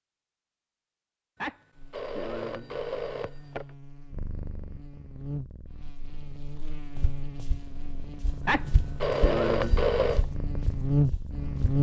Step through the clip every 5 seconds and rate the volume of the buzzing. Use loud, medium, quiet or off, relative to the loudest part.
quiet, quiet, loud.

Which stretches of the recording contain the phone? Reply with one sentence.
You can hear the phone from 1.4 to 3.6 s and from 8.4 to 10.2 s.